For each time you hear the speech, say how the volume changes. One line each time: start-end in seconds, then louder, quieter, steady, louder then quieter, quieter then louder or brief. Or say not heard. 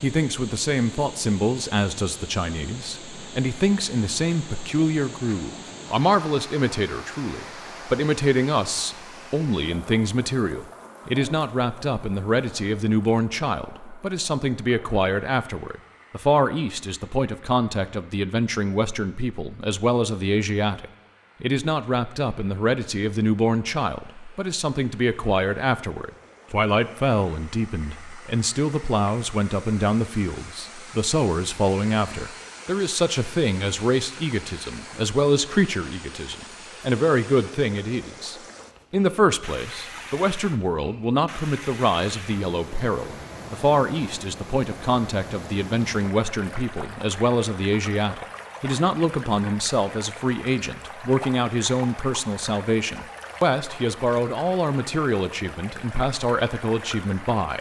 0.0-57.5 steady.